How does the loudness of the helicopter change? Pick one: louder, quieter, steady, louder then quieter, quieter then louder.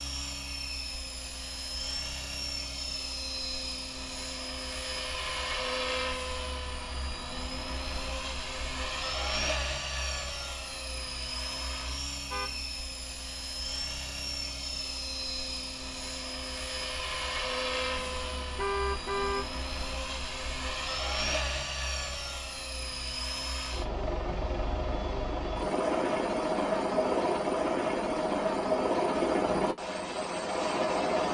louder.